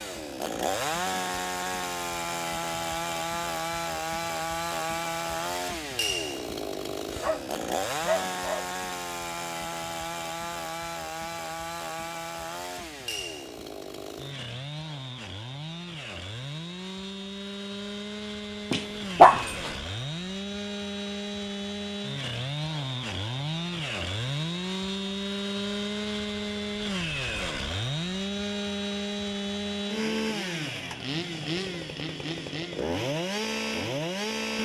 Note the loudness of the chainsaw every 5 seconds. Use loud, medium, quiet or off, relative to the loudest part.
loud, loud, medium, medium, loud, loud, loud.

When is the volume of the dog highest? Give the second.
19 s.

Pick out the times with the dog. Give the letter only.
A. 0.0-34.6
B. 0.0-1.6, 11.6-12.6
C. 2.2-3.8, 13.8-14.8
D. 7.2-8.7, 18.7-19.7
D.